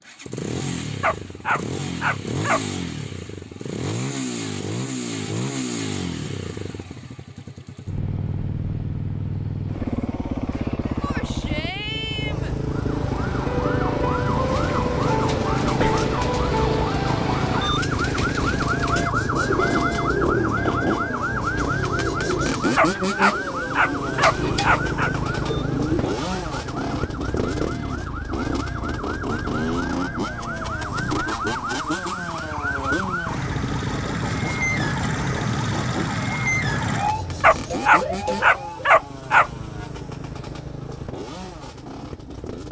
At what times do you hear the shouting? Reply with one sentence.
You can hear the shouting from 11.0 to 12.6 s.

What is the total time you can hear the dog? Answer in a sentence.
The dog can be heard for 6 seconds in total.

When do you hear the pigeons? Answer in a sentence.
You can hear the pigeons from 14.3 to 26.2 s.